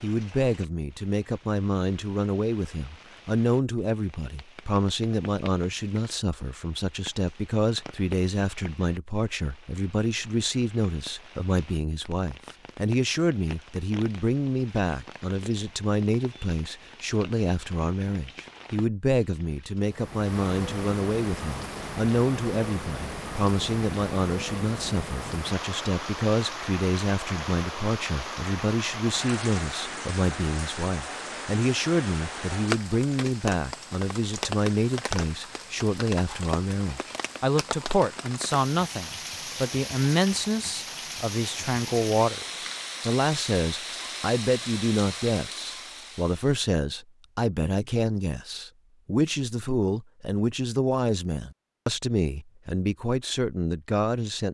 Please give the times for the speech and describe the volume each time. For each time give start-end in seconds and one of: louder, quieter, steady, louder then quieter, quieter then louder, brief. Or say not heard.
0.0-54.5 steady.